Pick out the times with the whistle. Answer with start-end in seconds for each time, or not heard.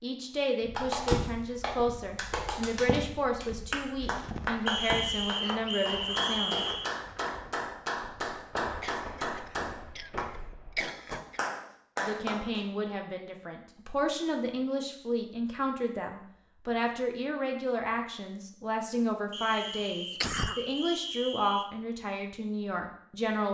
4.7-6.9, 19.3-21.7.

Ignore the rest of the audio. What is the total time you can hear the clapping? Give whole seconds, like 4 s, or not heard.
12 s.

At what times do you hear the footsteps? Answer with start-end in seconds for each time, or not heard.
0.6-11.2.